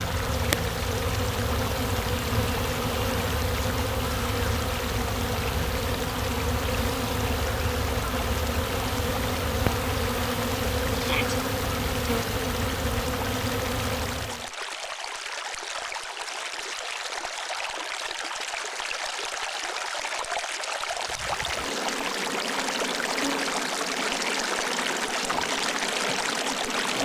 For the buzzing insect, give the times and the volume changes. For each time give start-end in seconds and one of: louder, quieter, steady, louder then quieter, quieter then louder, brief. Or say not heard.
0.0-14.5 steady
20.9-27.0 steady.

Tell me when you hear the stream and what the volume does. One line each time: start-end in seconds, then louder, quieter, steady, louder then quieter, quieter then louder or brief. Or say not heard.
0.0-27.0 louder.